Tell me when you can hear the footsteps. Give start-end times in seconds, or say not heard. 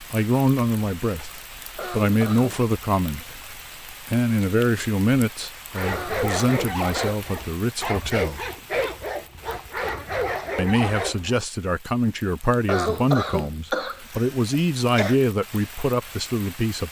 not heard.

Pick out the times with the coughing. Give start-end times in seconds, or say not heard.
1.8-2.6, 5.9-7.2, 12.7-15.2.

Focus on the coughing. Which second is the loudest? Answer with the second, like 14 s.
13 s.